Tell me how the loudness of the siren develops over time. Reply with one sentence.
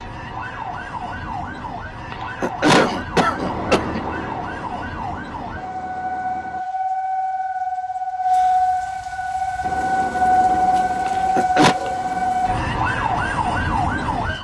The loudness of the siren goes up.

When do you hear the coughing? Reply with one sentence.
You can hear the coughing from 2.1 to 4.0 s and from 11.1 to 11.8 s.